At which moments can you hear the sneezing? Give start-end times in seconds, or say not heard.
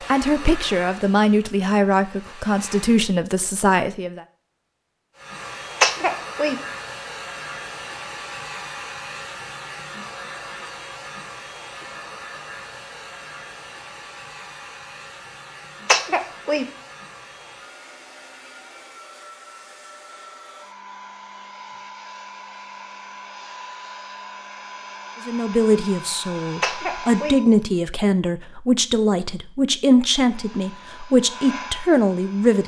5.8-6.6, 15.8-16.7, 26.6-27.4.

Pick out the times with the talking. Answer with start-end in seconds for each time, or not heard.
0.1-4.2, 25.2-32.6.